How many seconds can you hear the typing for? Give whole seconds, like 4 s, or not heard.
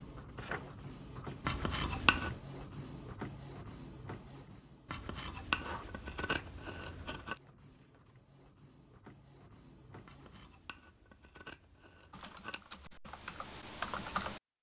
2 s.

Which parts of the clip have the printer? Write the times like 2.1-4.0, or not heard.
0.0-10.8.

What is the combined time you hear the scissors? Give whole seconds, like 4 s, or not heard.
6 s.